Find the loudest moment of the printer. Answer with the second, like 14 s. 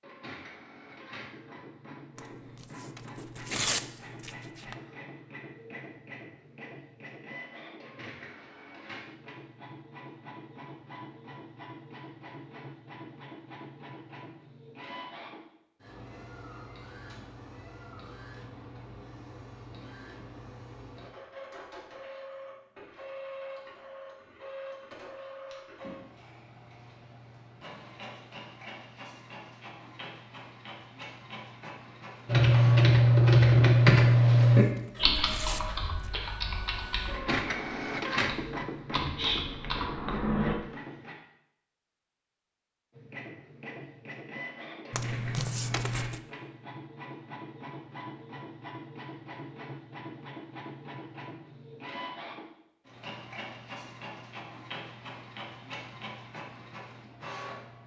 38 s.